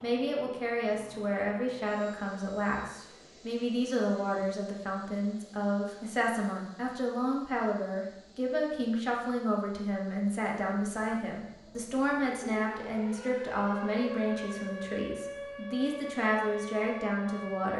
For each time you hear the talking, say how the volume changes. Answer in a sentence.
The talking can be heard from 0.0 to 17.7 s, at a steady volume.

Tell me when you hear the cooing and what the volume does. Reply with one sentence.
You can't hear the cooing here.